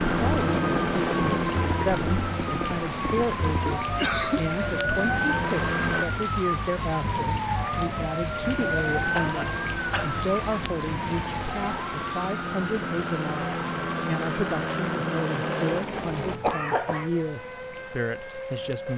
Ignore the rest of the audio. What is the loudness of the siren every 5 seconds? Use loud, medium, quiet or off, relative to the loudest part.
loud, loud, medium, medium.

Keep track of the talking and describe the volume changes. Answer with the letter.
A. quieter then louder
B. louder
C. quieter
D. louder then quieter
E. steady
E.